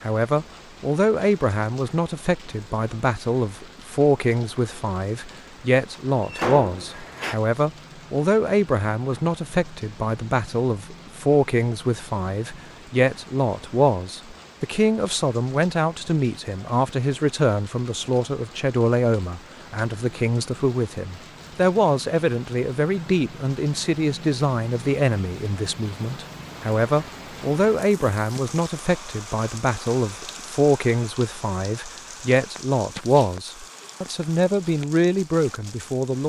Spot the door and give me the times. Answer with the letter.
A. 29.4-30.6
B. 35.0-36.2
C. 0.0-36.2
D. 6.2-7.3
D.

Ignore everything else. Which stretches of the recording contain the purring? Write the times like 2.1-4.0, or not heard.
not heard.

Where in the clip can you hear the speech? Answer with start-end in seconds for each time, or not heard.
0.0-36.2.